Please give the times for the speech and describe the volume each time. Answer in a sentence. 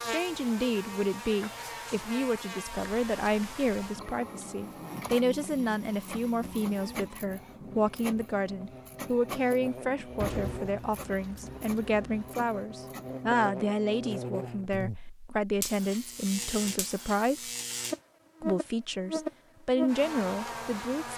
You can hear the speech from 0.0 to 17.4 s, at a steady volume; and briefly from 18.4 to 21.1 s.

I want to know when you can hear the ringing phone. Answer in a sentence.
The ringing phone can't be heard in this clip.